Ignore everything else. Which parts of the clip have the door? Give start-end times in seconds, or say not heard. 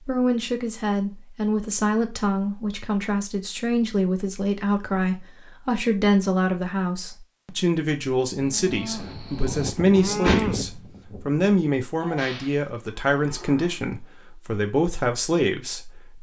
9.8-10.8.